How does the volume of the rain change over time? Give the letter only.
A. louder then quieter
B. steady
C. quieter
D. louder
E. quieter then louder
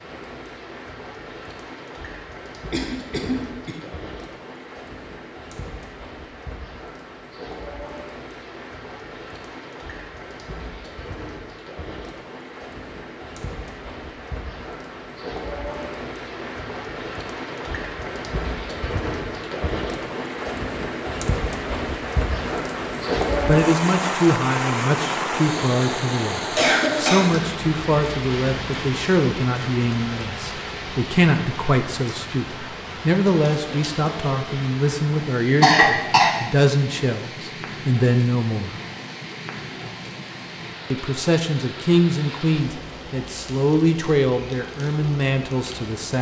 A.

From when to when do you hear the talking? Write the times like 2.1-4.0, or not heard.
23.4-38.8, 40.9-46.1.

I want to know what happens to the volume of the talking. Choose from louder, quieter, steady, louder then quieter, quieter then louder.
steady.